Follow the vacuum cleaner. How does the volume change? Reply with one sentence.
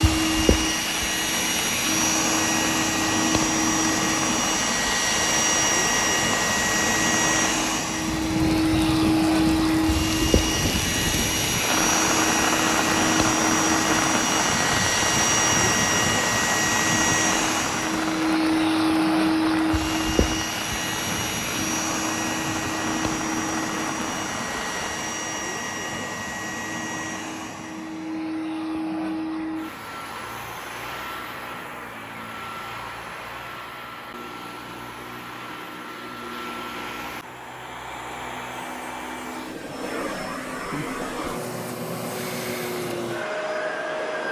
The volume of the vacuum cleaner goes down.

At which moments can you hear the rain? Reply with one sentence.
You can hear the rain from 0.0 to 25.1 s.